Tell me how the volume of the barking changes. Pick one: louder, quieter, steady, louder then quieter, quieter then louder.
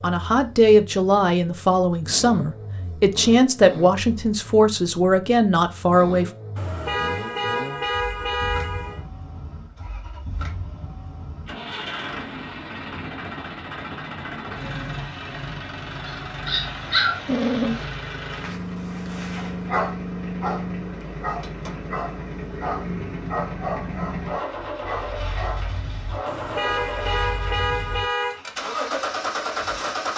quieter.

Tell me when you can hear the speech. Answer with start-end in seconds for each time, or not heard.
0.0-6.3.